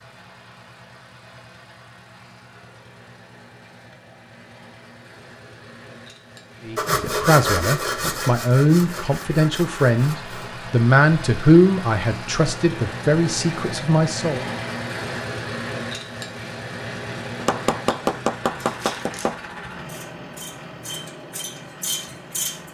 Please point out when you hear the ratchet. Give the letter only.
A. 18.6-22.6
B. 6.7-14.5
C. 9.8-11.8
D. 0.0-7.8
A.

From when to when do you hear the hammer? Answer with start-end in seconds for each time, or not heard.
17.4-19.4.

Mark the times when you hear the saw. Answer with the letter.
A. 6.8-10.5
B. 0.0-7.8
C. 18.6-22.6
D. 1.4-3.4
A.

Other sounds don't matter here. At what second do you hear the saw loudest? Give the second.
7 s.